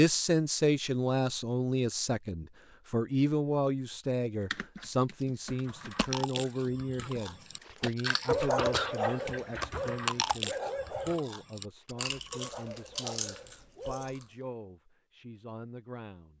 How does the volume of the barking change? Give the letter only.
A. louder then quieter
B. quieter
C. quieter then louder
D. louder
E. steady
B.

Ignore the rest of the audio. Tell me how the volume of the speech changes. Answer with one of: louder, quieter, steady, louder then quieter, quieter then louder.
quieter.